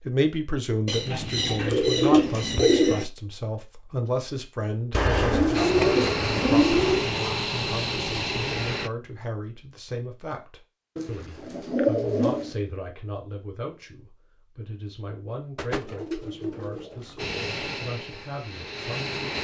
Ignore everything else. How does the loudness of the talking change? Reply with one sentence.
The loudness of the talking goes down.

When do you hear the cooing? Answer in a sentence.
The cooing can be heard from 0.8 to 3.0 s, from 4.9 to 7.1 s, from 10.9 to 12.6 s and from 15.6 to 17.2 s.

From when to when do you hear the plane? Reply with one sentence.
You can hear the plane from 5.5 to 8.9 s and from 17.1 to 19.3 s.